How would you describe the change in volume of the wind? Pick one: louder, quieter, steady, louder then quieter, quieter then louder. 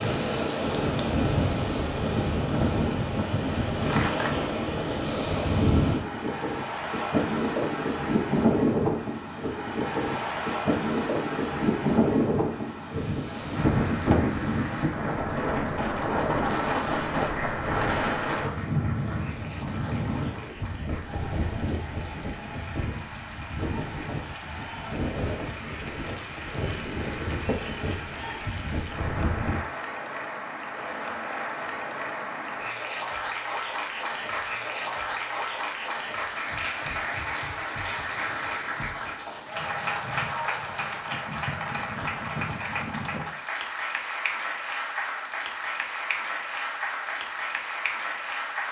quieter.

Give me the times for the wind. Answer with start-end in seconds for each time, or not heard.
0.0-29.6.